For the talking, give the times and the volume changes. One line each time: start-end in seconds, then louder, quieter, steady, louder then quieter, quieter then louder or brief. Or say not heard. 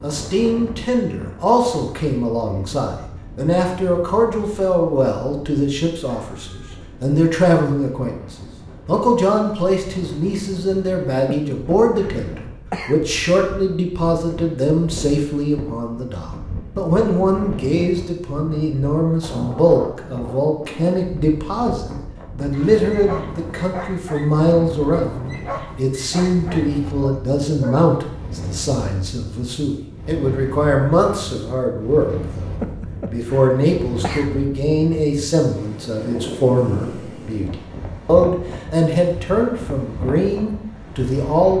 0.0-41.5 steady.